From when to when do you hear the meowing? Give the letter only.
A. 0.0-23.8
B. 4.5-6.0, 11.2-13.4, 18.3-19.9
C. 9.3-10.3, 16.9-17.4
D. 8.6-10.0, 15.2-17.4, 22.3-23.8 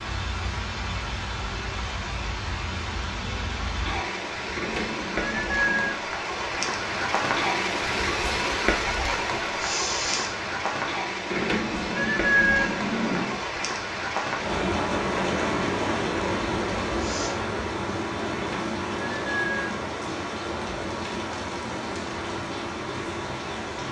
B.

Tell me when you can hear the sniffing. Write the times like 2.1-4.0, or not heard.
9.3-10.3, 16.9-17.4.